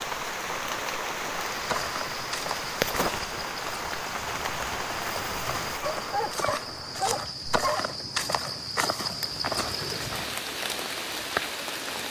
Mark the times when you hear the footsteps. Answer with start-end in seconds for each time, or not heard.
1.3-10.3.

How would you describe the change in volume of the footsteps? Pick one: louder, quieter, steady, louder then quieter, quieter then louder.
quieter then louder.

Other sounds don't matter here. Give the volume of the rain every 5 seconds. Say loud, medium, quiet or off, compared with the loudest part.
loud, medium, loud.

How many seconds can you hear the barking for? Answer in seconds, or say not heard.
2 s.